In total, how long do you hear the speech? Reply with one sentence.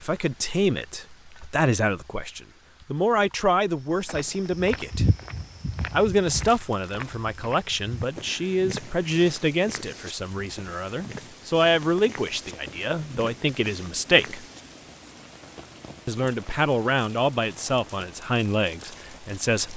You can hear the speech for 17 seconds altogether.